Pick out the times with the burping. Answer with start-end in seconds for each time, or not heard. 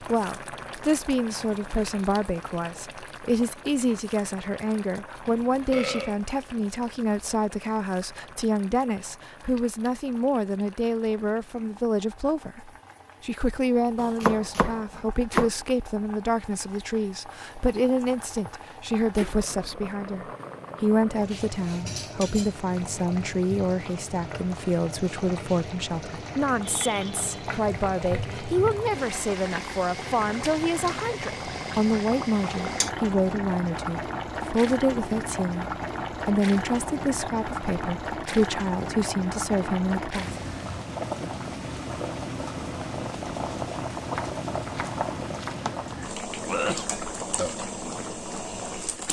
5.2-6.2, 46.4-47.5.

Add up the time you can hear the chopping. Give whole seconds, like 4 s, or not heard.
3 s.